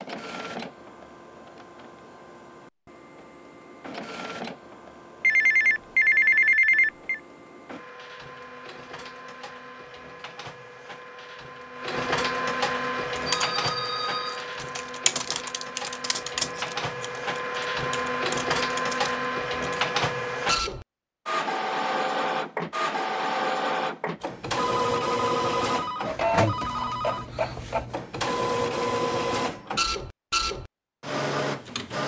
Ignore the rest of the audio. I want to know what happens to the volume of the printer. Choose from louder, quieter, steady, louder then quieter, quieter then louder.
louder.